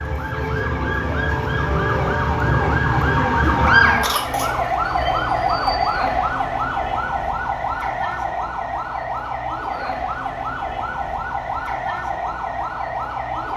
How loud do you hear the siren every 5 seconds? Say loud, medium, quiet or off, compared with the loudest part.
loud, loud, medium.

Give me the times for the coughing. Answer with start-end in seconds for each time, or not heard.
4.0-4.7.